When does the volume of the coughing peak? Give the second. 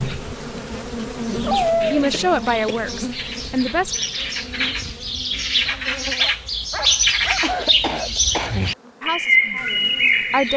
8 s.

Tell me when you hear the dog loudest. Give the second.
2 s.